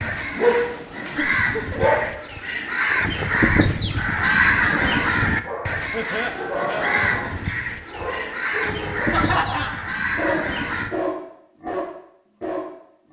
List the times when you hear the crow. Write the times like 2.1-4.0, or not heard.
0.0-10.9.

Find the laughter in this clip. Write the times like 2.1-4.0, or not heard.
1.1-1.9, 5.9-7.0, 9.1-9.8.